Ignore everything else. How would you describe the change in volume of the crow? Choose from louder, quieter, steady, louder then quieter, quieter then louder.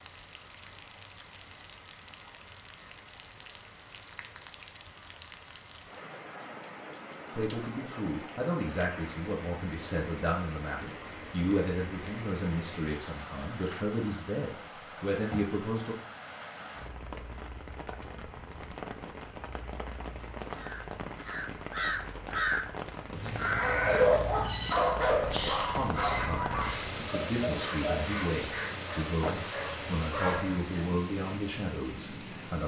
quieter.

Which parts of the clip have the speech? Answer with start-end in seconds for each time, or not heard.
7.3-15.9, 25.6-32.6.